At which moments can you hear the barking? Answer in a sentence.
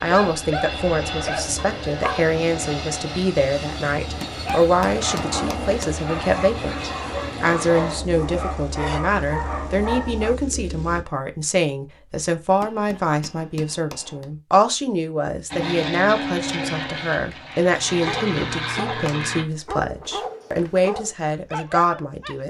The barking can be heard from 0.0 to 2.3 s, from 4.4 to 10.3 s and from 17.9 to 22.4 s.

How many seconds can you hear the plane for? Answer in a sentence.
You can hear the plane for 15 seconds altogether.